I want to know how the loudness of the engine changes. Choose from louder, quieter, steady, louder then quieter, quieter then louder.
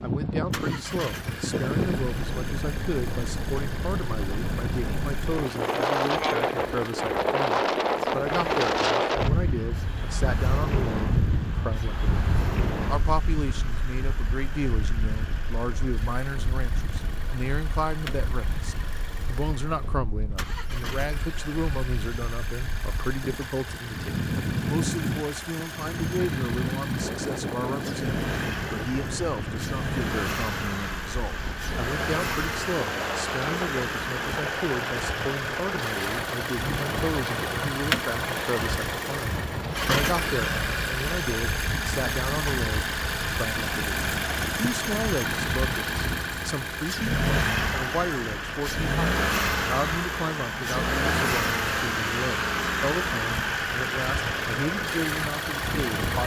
louder.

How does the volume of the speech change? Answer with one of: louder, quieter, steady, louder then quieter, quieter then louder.
steady.